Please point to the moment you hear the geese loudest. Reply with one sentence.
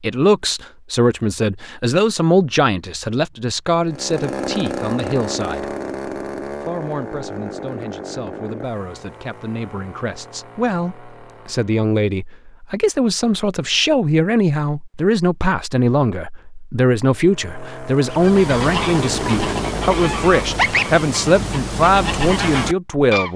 The volume of the geese peaks at 21 seconds.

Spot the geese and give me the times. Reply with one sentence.
You can hear the geese from 18.1 to 23.3 s.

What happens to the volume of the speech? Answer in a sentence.
The loudness of the speech goes down, then up.